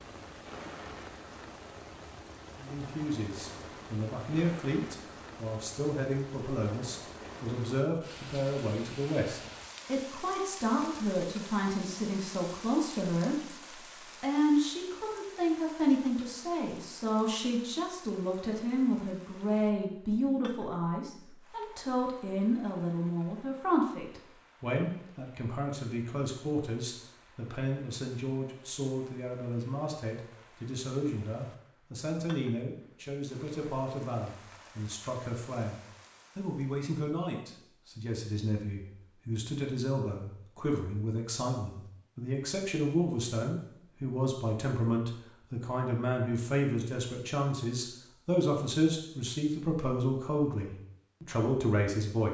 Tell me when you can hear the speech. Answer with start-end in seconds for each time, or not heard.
2.5-13.6, 14.2-35.8, 36.4-52.2.